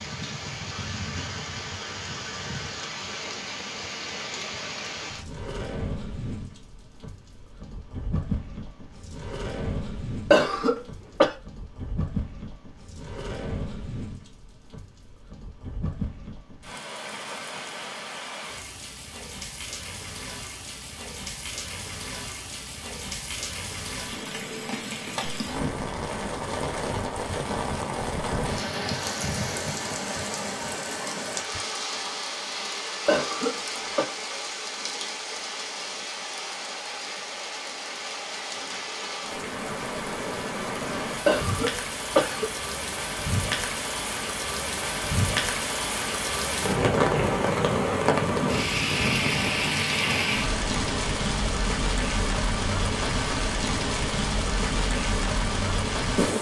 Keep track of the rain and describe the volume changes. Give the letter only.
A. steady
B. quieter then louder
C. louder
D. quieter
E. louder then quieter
C.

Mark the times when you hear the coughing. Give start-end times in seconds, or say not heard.
10.3-11.3, 33.0-34.1, 41.2-42.5.